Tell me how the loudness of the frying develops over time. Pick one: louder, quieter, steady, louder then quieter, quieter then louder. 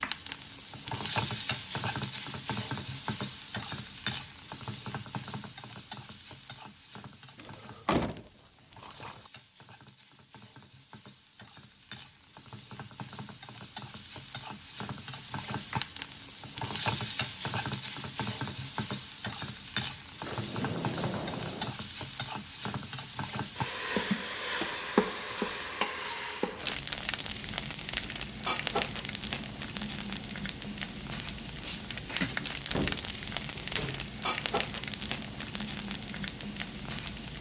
quieter then louder.